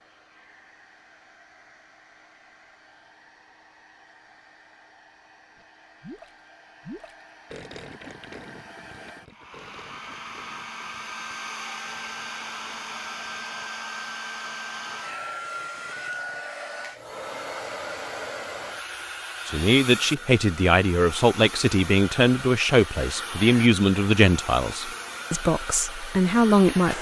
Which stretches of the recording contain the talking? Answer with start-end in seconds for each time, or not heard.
19.4-26.9.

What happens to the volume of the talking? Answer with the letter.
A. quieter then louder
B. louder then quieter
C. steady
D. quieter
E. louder
C.